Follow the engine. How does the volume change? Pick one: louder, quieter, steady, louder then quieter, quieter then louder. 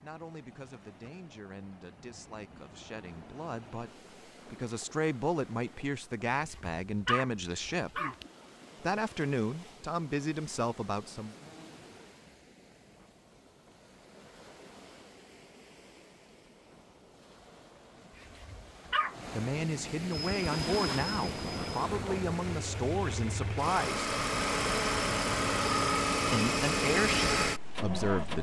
louder.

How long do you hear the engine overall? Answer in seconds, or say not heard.
8 s.